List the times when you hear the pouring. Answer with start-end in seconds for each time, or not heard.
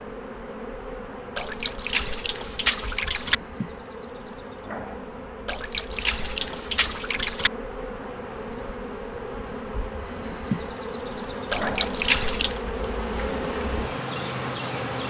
1.4-3.4, 5.5-7.5, 11.5-12.6.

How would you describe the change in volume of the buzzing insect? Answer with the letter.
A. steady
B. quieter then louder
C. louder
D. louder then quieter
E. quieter
C.